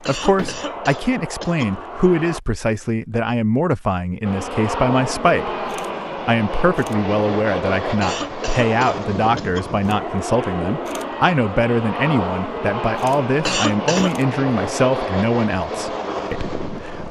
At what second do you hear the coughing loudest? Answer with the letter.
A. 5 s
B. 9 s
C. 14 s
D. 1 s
C.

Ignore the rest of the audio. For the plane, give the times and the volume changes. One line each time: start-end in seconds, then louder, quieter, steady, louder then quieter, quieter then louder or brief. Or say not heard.
0.0-2.4 brief
4.2-17.0 steady.